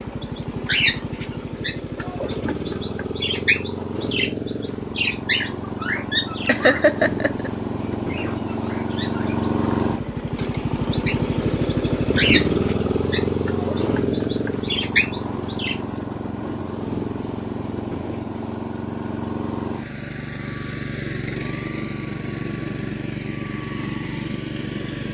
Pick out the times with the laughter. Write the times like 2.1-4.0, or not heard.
6.5-7.5.